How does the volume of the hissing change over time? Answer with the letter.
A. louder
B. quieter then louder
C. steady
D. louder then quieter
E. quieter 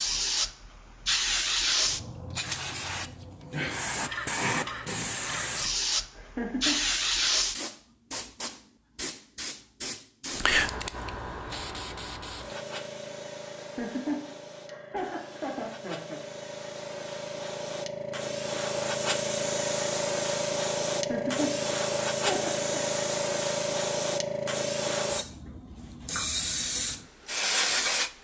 B.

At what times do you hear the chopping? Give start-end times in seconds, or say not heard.
not heard.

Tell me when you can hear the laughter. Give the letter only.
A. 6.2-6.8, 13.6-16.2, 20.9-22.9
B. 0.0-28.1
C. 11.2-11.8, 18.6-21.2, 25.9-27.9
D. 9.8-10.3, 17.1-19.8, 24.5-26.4
A.